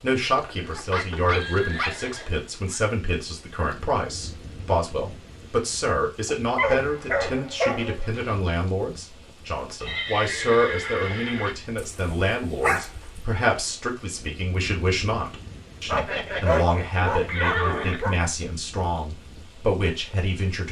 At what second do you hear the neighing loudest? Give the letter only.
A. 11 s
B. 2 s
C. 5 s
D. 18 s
D.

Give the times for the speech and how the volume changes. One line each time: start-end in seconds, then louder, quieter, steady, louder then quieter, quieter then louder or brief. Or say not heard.
0.0-20.6 steady.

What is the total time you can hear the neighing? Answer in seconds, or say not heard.
6 s.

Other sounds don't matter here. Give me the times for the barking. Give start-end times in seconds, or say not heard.
0.2-1.9, 6.2-8.4, 11.8-13.2, 15.8-18.1.